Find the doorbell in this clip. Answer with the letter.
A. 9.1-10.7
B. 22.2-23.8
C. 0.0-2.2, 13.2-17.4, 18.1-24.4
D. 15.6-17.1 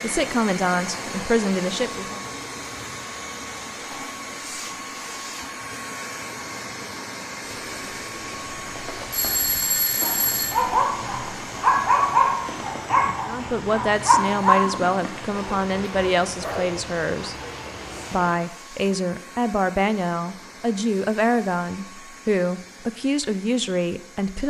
A.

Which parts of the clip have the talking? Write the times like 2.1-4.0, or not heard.
0.0-2.2, 13.2-17.4, 18.1-24.4.